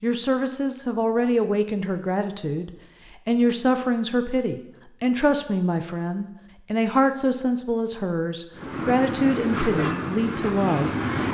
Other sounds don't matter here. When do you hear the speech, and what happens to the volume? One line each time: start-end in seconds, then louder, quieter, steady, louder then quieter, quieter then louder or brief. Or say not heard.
0.0-10.9 steady.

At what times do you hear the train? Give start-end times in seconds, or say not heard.
8.6-11.2.